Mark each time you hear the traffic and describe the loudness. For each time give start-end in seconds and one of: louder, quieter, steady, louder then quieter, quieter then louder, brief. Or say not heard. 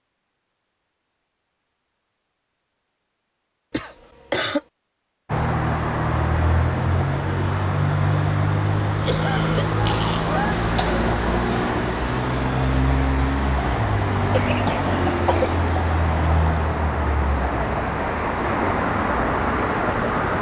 5.2-20.3 steady.